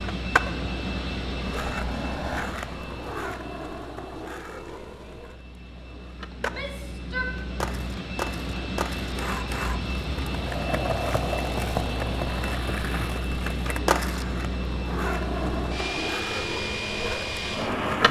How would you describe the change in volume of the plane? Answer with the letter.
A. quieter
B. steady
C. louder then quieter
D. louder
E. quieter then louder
E.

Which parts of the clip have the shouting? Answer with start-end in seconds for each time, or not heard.
6.4-7.3.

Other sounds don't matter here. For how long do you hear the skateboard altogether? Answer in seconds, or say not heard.
18 s.